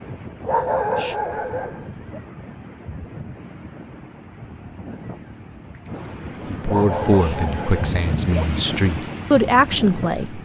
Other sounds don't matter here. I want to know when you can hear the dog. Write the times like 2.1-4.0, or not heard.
0.5-2.2, 6.7-8.4.